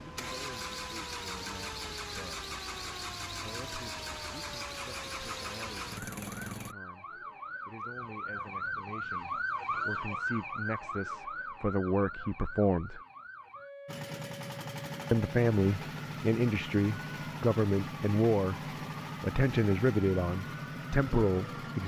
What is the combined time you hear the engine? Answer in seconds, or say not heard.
15 s.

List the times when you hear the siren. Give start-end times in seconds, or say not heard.
0.0-21.8.